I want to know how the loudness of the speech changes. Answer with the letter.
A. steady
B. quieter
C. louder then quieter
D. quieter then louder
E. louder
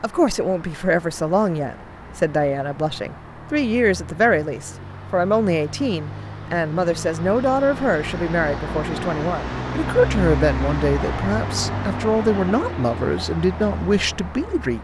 A.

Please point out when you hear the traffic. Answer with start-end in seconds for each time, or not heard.
0.0-14.7.